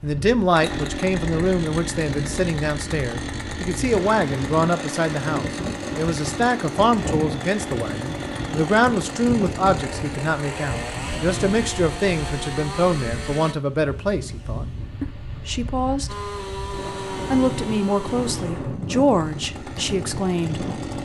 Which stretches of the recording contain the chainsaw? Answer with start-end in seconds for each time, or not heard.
0.0-13.6, 16.1-21.0.